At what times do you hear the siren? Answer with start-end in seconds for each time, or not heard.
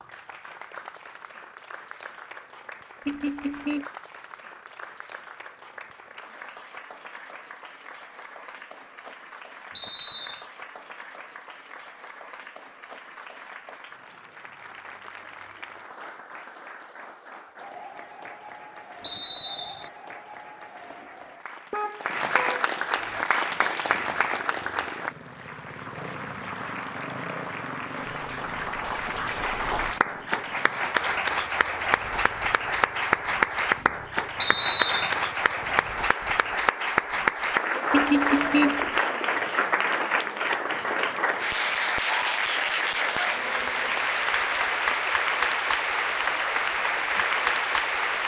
not heard.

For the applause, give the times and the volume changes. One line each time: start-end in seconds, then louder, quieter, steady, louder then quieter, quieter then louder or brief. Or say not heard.
0.0-48.2 louder.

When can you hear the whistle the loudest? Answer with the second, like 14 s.
35 s.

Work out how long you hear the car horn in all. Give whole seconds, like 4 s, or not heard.
3 s.